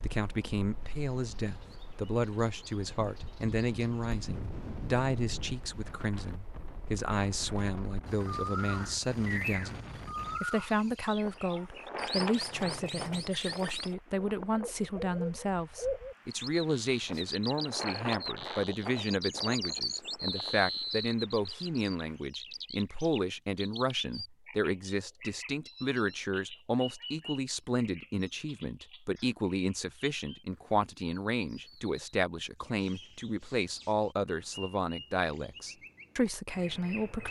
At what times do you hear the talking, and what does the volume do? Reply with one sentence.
You can hear the talking from 0.0 to 37.2 s, at a steady volume.